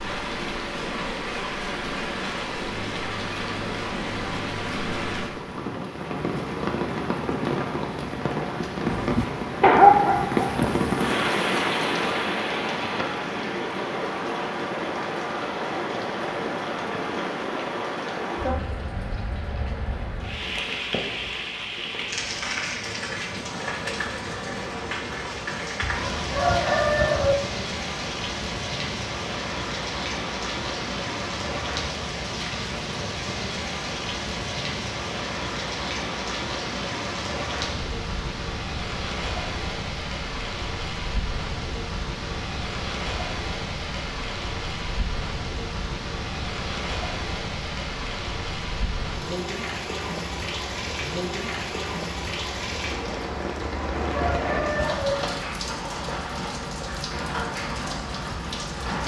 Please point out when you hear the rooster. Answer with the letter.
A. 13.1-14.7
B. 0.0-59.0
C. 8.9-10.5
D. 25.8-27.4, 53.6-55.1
D.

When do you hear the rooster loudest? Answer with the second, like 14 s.
27 s.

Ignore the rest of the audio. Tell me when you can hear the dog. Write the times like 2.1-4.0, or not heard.
8.9-10.5.